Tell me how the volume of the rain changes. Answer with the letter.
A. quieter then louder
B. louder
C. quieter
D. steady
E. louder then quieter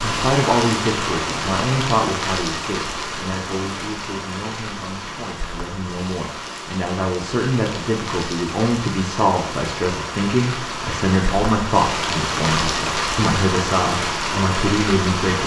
A.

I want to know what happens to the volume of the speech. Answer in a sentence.
The volume of the speech goes down, then up.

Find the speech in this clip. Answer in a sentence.
You can hear the speech from 0.0 to 15.4 s.